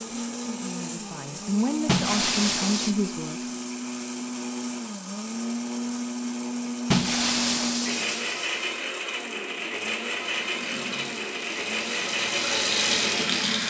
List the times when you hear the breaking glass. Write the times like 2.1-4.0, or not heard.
1.9-3.0, 6.9-8.9.